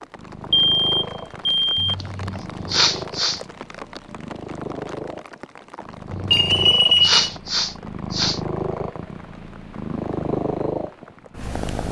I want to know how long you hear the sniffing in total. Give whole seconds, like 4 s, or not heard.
4 s.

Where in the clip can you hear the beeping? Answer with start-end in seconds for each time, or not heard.
0.5-1.9, 6.3-7.2.